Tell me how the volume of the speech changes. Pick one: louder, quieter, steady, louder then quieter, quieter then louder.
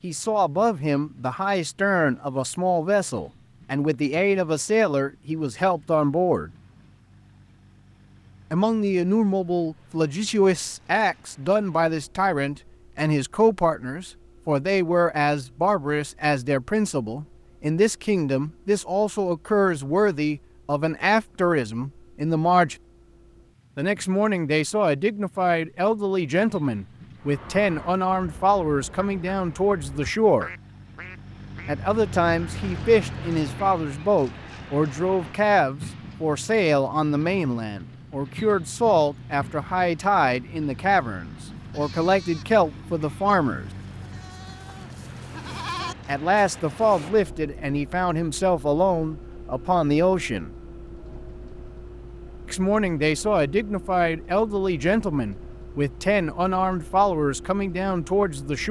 steady.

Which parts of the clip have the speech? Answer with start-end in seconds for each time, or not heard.
0.0-6.5, 8.5-22.8, 23.8-30.5, 31.6-43.6, 46.0-50.5, 52.5-58.6.